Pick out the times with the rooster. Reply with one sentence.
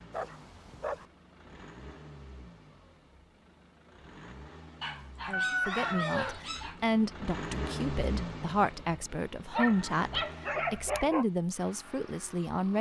You can hear the rooster from 5.3 to 6.4 s.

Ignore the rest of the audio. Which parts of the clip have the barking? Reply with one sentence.
The barking can be heard from 0.1 to 1.1 s, from 4.8 to 6.8 s and from 9.5 to 11.2 s.